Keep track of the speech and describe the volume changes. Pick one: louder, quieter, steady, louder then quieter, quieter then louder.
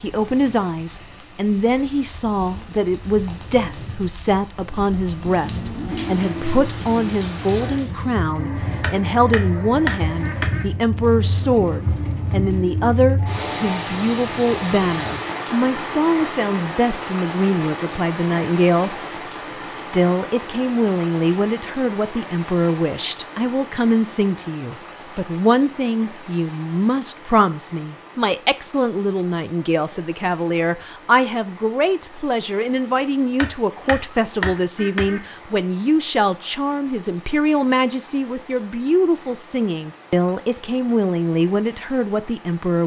steady.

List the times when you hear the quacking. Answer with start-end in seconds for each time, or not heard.
8.8-10.7, 33.4-35.2.